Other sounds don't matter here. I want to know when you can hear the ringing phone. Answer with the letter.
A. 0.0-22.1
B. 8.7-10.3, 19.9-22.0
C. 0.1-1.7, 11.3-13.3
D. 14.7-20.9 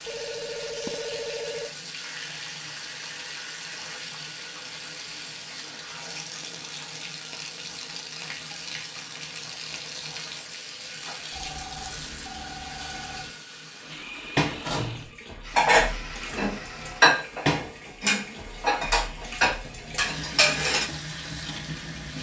C.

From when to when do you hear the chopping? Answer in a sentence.
The chopping can't be heard in this clip.